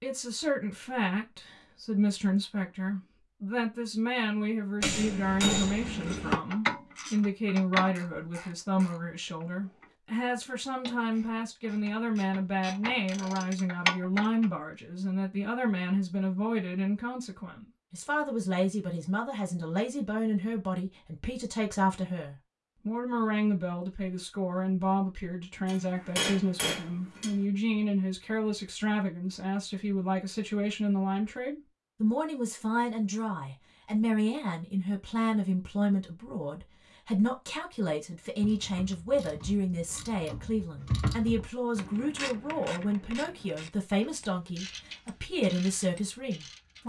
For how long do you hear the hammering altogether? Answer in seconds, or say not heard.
3 s.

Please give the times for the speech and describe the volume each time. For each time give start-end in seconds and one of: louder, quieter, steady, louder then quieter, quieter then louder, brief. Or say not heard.
0.0-46.8 steady.